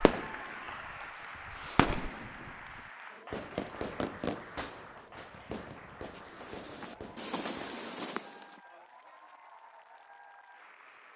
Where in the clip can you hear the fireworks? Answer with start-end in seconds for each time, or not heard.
0.0-0.7, 1.4-7.9.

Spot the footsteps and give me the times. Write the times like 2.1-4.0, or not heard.
6.1-8.6.